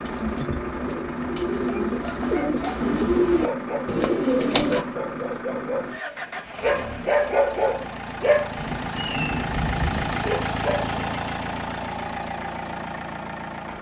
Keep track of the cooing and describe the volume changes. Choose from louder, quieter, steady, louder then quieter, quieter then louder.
louder.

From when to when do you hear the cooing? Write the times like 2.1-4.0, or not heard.
0.0-4.8.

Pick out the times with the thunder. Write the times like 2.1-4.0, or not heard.
8.6-10.3.